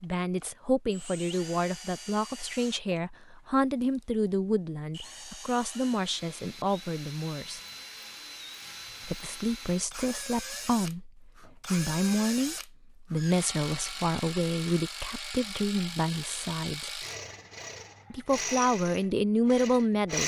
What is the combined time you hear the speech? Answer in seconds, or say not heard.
18 s.